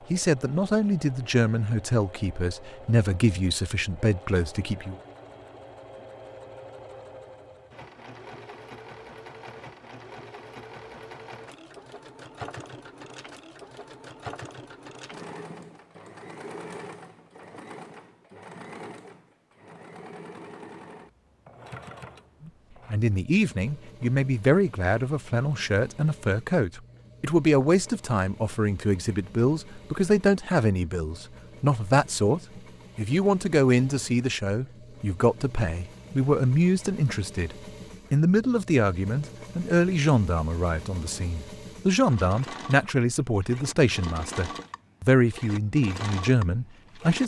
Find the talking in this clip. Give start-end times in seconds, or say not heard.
0.1-5.0, 22.4-47.2.